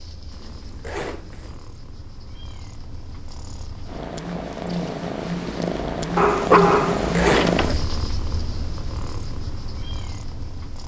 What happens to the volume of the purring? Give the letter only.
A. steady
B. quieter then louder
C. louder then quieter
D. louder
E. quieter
C.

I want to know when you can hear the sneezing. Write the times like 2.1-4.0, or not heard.
not heard.